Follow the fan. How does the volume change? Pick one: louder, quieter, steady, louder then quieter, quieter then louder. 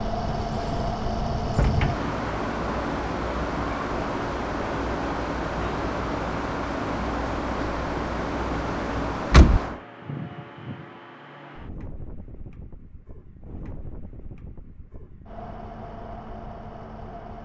quieter.